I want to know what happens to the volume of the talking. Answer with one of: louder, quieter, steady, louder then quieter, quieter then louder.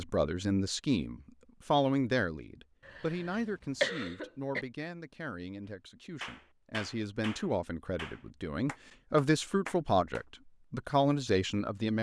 quieter then louder.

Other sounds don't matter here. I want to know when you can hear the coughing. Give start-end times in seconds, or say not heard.
2.9-4.7.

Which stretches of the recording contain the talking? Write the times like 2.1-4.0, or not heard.
0.0-11.9.